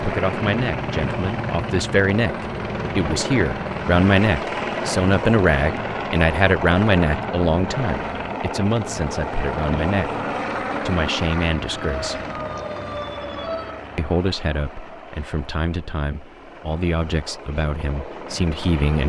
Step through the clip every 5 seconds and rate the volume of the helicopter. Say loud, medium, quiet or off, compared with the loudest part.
loud, loud, loud, medium.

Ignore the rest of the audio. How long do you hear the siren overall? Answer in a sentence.
The siren can be heard for 2 seconds in total.